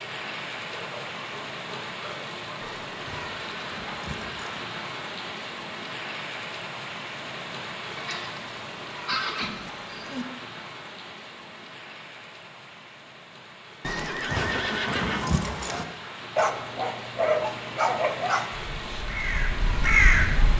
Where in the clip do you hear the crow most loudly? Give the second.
20 s.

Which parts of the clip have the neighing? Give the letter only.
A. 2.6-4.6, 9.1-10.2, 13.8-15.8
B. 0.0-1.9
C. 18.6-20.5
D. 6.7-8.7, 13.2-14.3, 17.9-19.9
A.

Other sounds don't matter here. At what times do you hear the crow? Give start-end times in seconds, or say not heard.
18.6-20.5.